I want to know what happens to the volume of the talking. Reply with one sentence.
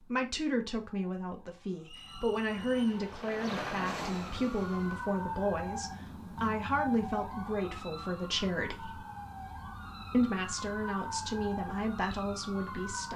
The volume of the talking stays about the same.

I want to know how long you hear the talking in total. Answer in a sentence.
You can hear the talking for 12 seconds altogether.